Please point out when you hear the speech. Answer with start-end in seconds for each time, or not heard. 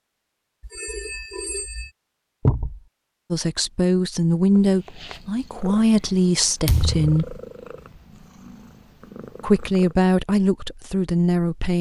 3.3-7.4, 9.4-11.7.